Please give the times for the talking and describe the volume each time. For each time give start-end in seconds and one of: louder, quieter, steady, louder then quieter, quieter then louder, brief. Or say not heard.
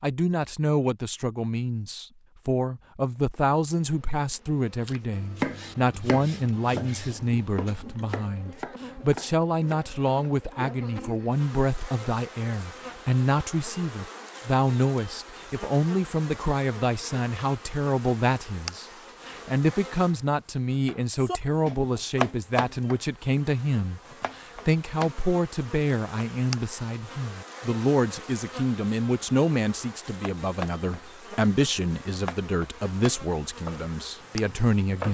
0.0-35.1 steady.